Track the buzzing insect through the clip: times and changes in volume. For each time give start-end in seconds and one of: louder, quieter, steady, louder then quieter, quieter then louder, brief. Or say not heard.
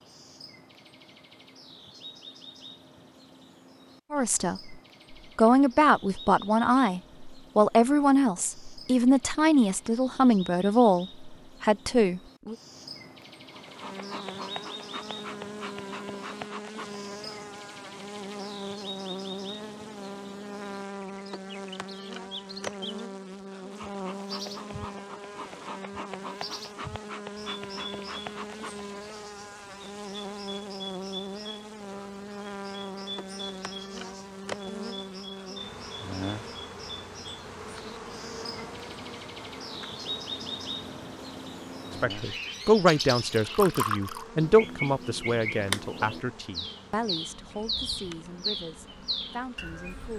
13.5-50.1 quieter.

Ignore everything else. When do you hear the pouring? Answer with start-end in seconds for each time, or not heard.
43.4-44.2.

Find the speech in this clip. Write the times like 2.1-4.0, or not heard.
4.1-4.8, 5.3-12.6, 42.0-50.1.